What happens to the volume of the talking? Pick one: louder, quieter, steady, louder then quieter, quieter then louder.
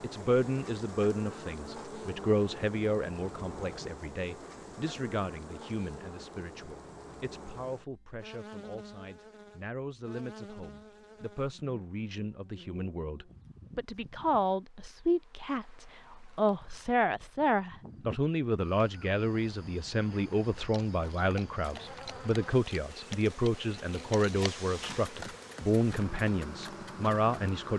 quieter then louder.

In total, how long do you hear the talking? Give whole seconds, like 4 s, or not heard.
28 s.